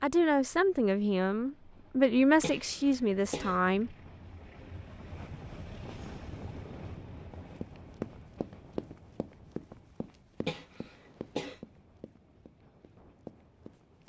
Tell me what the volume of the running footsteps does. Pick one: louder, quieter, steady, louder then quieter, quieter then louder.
quieter.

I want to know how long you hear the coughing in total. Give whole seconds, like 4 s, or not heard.
2 s.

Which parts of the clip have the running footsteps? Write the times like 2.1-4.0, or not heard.
7.3-14.0.